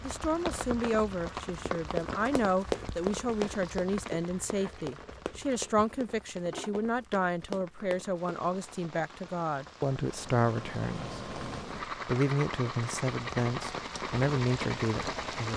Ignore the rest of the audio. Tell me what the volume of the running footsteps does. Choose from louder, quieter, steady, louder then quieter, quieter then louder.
quieter then louder.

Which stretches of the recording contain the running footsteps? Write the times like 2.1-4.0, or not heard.
1.2-8.7.